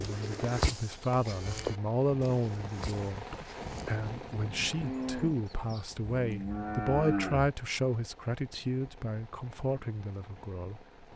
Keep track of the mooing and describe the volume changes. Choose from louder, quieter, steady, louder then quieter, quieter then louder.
quieter then louder.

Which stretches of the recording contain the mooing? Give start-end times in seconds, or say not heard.
0.0-7.5.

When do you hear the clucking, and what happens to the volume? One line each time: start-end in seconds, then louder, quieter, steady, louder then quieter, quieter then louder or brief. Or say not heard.
not heard.